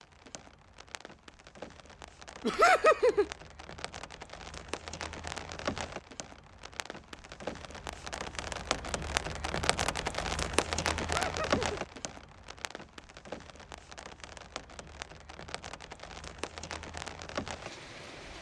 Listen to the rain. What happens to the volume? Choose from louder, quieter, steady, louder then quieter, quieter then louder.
louder then quieter.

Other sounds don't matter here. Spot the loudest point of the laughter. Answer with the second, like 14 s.
3 s.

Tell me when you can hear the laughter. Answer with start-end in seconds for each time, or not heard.
2.5-3.2, 11.1-11.8.